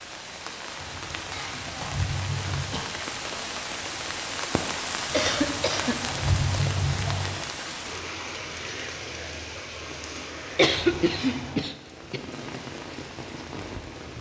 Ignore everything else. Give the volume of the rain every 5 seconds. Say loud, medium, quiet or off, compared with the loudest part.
loud, loud, medium.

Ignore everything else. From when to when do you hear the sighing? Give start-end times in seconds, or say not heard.
0.8-2.8, 5.2-7.3, 10.6-11.7.